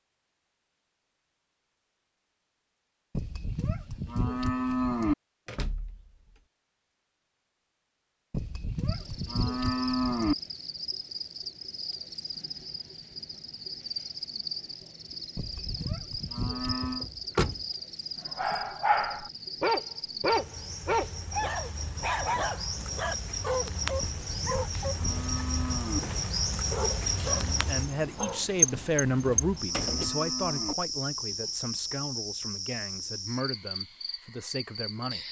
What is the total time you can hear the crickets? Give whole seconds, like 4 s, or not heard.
26 s.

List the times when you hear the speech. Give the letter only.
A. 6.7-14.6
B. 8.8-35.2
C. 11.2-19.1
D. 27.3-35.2
D.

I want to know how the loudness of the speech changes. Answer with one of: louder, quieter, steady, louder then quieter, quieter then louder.
quieter.